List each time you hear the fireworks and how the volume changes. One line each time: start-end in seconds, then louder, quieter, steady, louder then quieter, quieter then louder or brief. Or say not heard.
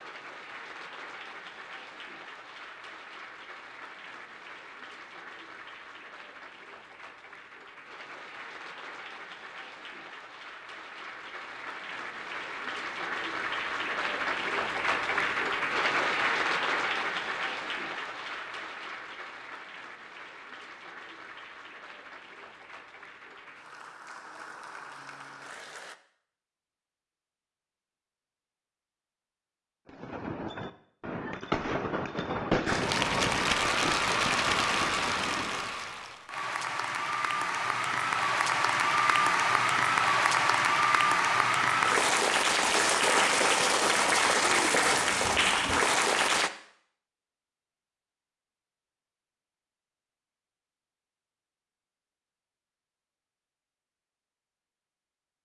29.9-35.8 louder then quieter.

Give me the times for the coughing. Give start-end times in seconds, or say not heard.
not heard.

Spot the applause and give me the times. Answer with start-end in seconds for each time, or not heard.
0.0-25.9, 32.6-46.5.